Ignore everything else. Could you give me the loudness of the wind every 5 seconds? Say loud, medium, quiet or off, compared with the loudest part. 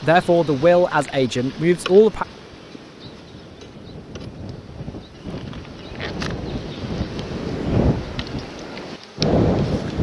quiet, loud.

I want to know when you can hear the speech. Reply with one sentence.
The speech can be heard from 0.0 to 2.2 s.